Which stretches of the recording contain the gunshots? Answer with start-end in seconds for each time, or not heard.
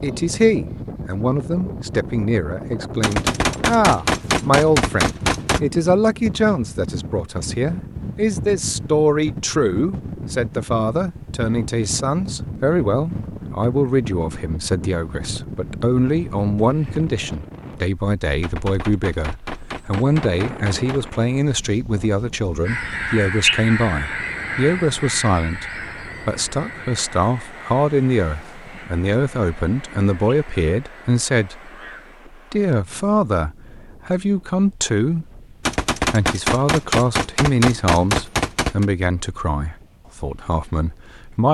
3.0-5.6, 18.4-21.0, 35.6-38.9.